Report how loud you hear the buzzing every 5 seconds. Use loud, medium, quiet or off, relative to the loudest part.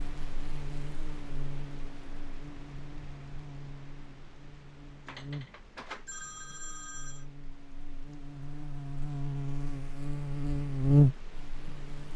quiet, quiet, loud.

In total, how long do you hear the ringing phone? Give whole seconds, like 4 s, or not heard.
2 s.